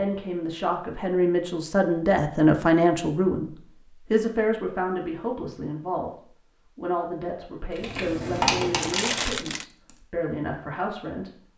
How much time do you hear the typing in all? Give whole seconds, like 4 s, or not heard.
2 s.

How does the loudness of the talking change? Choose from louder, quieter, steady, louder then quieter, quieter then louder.
quieter.